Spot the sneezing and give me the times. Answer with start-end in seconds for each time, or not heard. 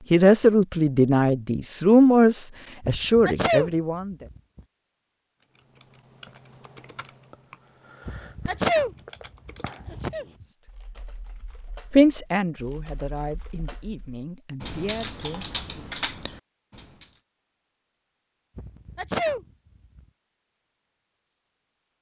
2.8-4.6, 8.1-10.4, 18.6-20.0.